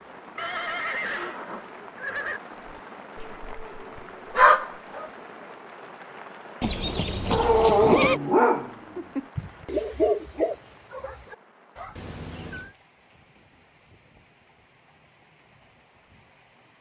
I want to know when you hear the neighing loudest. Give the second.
8 s.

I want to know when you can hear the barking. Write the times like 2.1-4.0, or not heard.
3.1-5.1, 7.3-11.9.